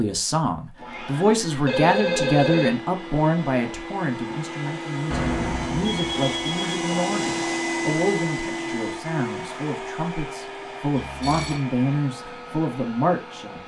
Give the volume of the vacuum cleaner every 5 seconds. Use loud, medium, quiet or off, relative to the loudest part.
medium, loud, medium.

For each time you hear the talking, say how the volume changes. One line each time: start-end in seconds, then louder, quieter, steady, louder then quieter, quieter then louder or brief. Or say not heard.
0.0-13.6 quieter then louder.